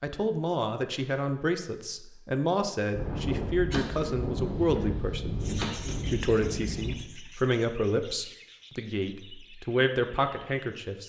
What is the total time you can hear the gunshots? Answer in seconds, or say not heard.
4 s.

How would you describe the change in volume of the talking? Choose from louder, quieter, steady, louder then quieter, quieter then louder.
steady.